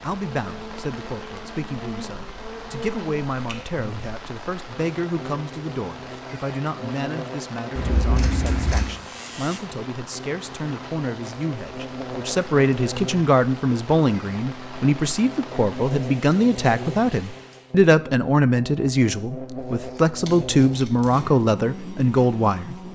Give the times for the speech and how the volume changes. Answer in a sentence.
The speech can be heard from 0.0 to 22.8 s, getting louder.